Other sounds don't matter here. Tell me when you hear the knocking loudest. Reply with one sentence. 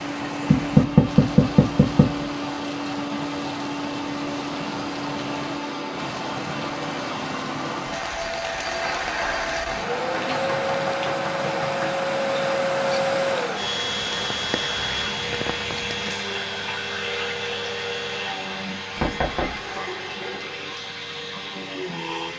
The loudest moment of the knocking is at 1 second.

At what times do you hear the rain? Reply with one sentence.
You can hear the rain from 0.0 to 16.1 s.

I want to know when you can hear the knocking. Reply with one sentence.
The knocking can be heard from 0.5 to 2.2 s, from 10.1 to 12.0 s and from 18.9 to 19.8 s.